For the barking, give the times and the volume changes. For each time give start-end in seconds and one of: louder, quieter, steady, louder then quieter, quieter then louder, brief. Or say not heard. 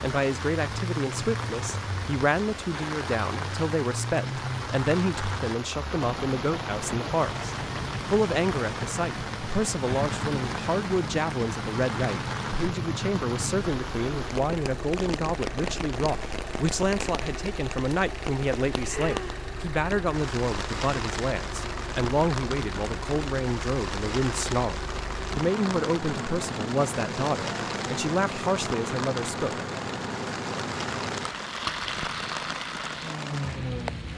not heard.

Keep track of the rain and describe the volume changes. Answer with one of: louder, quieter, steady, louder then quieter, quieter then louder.
steady.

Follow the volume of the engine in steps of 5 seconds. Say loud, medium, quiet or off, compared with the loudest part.
loud, loud, loud, medium, medium, loud, loud.